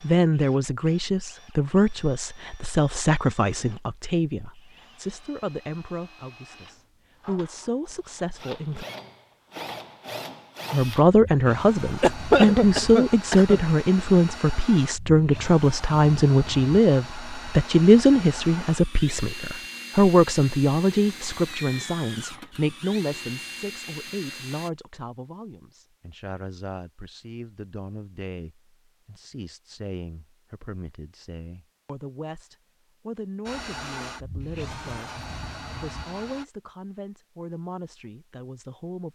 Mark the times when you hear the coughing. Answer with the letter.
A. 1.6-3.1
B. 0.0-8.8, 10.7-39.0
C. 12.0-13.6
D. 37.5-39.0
C.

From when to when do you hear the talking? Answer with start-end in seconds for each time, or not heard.
0.0-8.8, 10.7-39.0.